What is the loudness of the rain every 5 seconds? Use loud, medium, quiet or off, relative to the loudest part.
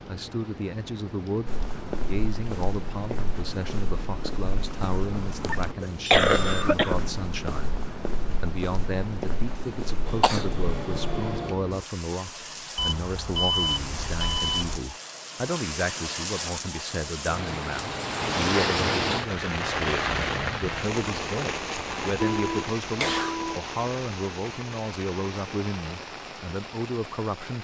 quiet, quiet, medium, loud, loud, medium.